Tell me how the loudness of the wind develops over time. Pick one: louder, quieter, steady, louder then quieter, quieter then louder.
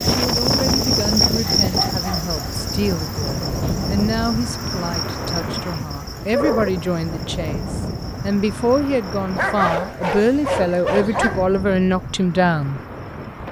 quieter.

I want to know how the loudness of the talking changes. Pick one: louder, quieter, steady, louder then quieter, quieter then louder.
louder.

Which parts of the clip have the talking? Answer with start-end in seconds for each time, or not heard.
0.1-12.8.